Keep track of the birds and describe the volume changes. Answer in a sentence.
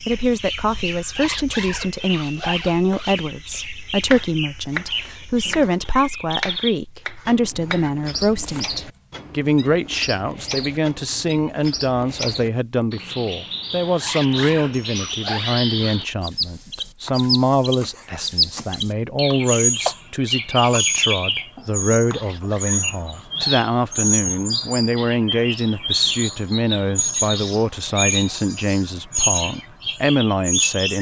The volume of the birds goes up.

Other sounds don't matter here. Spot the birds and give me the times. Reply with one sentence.
The birds can be heard from 0.0 to 30.9 s.